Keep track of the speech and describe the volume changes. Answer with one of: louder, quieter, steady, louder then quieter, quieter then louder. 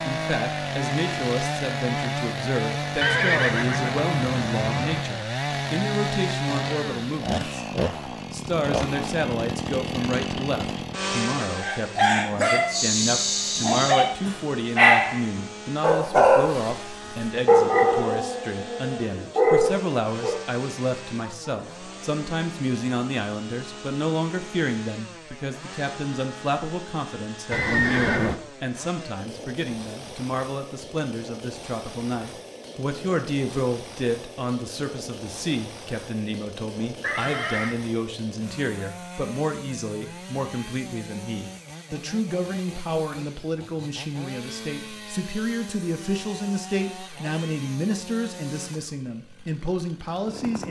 steady.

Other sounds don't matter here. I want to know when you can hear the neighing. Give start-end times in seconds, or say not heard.
3.0-5.0, 27.5-28.4, 37.0-37.8.